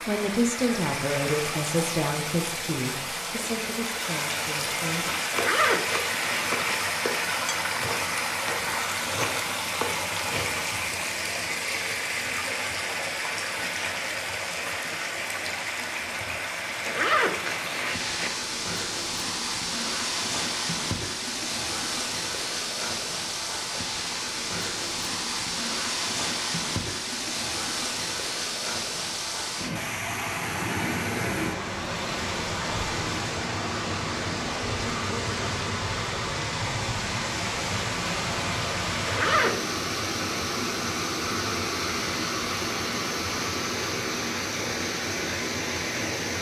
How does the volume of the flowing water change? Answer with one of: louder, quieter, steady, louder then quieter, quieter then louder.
steady.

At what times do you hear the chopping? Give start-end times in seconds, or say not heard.
5.2-10.7.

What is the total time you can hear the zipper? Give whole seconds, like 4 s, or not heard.
4 s.